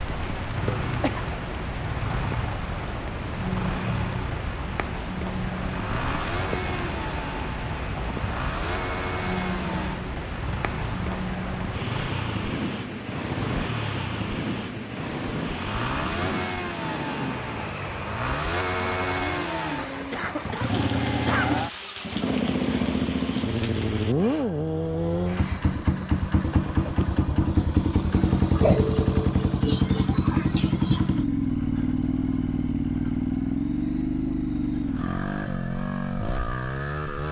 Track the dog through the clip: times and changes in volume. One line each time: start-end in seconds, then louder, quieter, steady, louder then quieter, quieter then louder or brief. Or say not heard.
not heard.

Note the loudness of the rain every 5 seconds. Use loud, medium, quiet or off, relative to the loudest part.
loud, loud, loud, loud, medium, off, off, off.